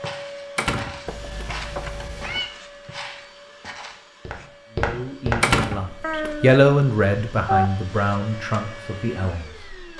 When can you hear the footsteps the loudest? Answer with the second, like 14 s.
5 s.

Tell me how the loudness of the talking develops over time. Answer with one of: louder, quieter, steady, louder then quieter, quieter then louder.
louder then quieter.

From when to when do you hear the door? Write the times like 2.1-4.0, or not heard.
0.6-1.4, 5.4-6.3.